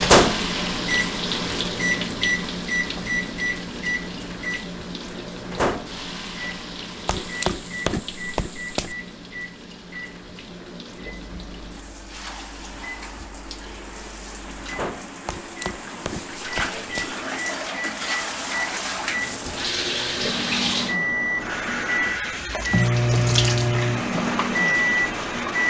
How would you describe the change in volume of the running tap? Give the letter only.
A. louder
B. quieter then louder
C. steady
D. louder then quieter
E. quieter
B.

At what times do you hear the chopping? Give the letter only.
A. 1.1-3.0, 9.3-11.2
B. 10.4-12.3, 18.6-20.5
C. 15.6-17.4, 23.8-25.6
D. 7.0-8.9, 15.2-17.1
D.